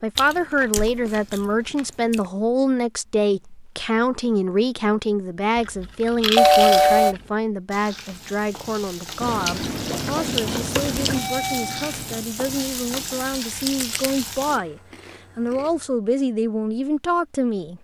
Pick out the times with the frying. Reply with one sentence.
You can hear the frying from 7.7 to 14.6 s.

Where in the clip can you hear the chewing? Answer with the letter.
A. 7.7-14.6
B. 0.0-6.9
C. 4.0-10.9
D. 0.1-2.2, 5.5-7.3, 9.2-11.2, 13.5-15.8
D.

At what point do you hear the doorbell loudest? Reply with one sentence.
The loudest moment of the doorbell is at 7 seconds.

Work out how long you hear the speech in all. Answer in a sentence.
The speech can be heard for 18 seconds in total.